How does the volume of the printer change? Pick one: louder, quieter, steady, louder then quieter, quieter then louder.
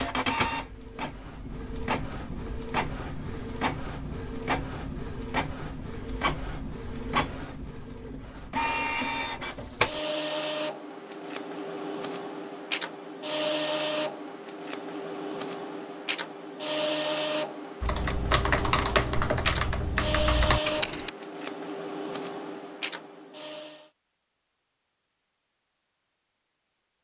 steady.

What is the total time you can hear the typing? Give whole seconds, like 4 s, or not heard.
3 s.